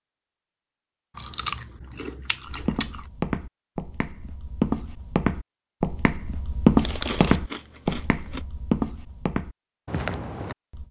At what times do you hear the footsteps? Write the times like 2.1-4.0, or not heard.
2.5-10.8.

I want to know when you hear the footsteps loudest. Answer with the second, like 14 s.
7 s.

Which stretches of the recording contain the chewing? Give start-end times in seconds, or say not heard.
1.1-3.0, 6.8-8.4.